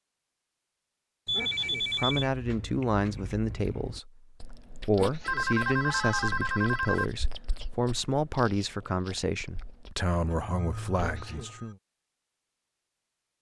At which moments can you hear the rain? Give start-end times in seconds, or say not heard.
not heard.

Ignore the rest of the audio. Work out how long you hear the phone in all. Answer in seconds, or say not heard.
4 s.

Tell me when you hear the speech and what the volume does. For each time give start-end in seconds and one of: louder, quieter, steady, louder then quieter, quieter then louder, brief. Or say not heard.
1.6-11.8 steady.